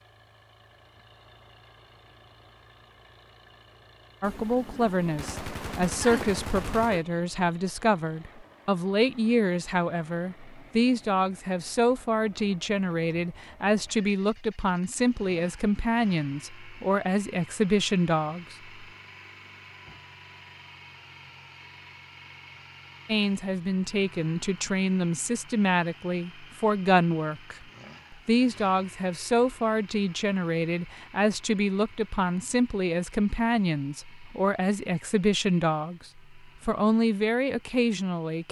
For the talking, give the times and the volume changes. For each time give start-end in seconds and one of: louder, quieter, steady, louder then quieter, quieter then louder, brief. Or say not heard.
4.2-18.7 steady
23.1-38.4 steady.